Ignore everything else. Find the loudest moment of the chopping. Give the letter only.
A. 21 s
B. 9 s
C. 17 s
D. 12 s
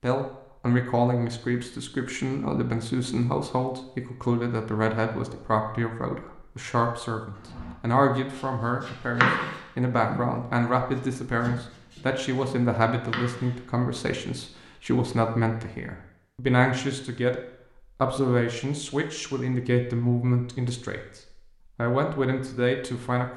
B.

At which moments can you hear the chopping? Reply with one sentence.
You can hear the chopping from 7.3 to 13.7 s.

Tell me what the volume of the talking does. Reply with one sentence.
The volume of the talking stays about the same.